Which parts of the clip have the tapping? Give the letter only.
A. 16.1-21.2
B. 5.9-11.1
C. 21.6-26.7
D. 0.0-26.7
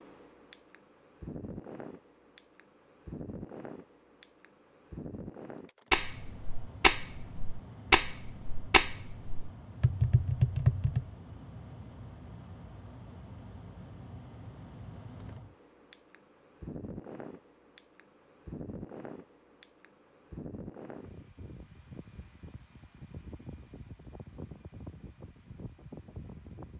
B.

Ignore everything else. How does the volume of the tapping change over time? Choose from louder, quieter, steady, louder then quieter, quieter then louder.
quieter then louder.